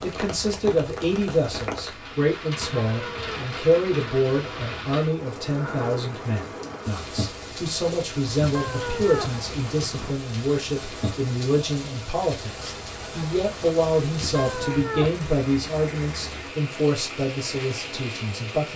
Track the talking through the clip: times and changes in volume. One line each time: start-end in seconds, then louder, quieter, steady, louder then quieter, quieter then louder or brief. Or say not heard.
0.0-18.7 steady.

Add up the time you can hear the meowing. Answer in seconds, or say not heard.
4 s.